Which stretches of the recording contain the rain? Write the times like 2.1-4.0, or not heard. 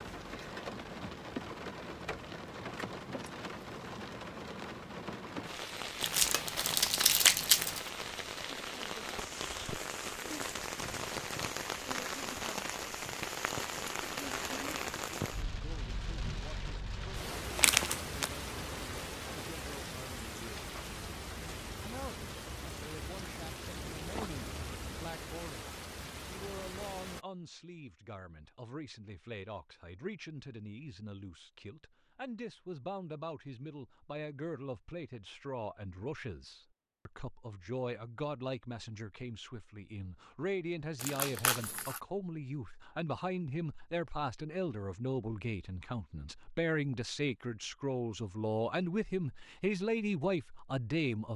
0.0-27.2.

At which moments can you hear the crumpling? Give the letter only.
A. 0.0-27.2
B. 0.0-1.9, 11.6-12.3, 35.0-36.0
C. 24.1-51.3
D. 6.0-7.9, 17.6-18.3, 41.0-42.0
D.